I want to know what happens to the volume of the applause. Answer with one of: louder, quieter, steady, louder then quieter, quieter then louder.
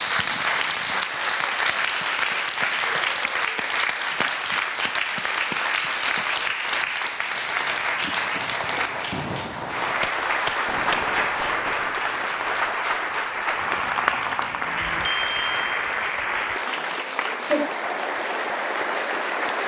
steady.